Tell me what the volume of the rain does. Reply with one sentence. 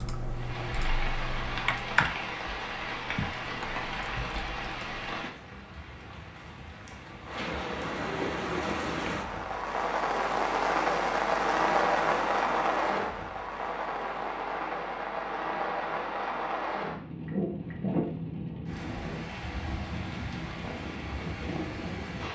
The loudness of the rain goes up, then down.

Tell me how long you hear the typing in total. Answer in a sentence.
The typing can be heard for 5 seconds in total.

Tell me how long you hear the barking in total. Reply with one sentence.
The barking can't be heard in this clip.